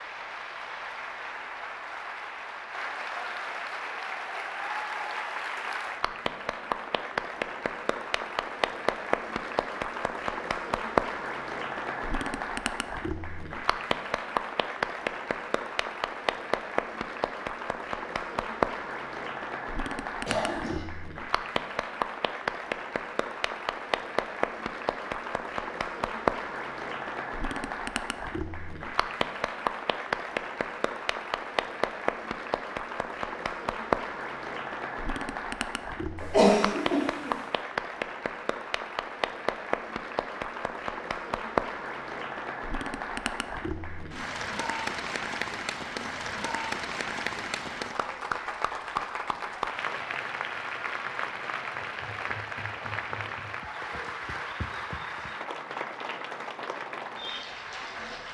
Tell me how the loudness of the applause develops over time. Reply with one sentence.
The loudness of the applause stays about the same.